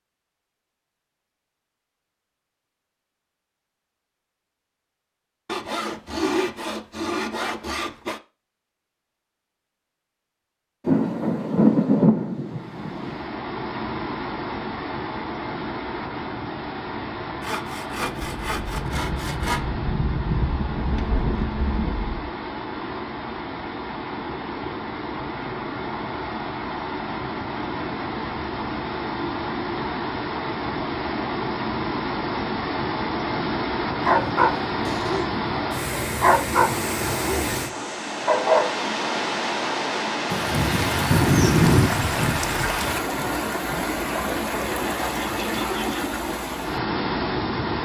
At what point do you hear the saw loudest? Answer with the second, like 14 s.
6 s.